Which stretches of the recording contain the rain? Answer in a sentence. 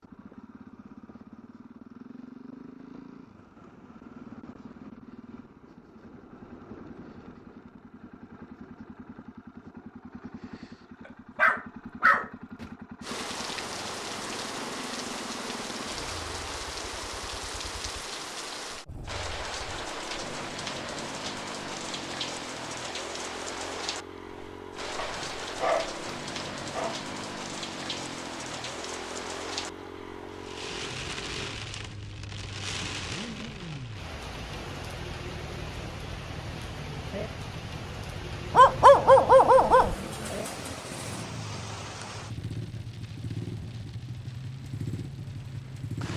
The rain can be heard from 13.0 to 46.1 s.